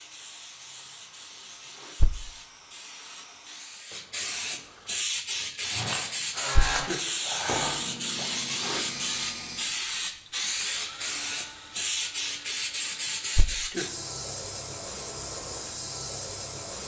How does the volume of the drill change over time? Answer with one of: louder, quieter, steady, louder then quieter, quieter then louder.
louder then quieter.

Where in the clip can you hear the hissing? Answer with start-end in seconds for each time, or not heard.
0.0-16.8.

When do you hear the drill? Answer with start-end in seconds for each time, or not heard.
0.0-13.6.